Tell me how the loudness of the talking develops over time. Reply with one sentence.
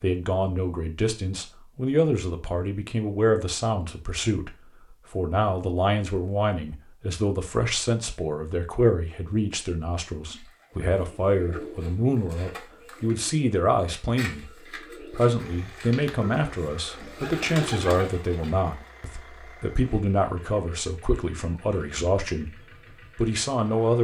The loudness of the talking stays about the same.